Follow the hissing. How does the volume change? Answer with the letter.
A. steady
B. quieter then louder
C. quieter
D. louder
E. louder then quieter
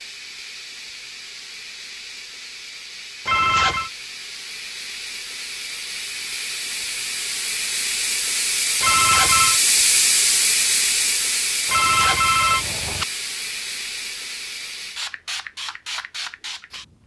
E.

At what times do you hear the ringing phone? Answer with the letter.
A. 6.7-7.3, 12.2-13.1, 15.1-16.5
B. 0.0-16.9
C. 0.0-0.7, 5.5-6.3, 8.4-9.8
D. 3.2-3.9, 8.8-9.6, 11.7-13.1
D.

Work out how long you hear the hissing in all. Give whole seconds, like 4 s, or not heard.
17 s.